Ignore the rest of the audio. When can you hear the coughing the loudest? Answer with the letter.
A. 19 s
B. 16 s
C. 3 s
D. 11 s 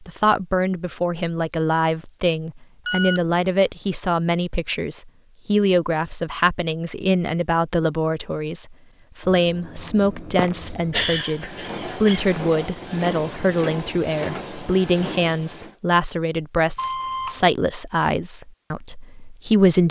D.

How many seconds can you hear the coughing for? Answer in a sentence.
The coughing can be heard for 2 seconds in total.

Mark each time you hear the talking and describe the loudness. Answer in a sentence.
You can hear the talking from 0.0 to 19.8 s, at a steady volume.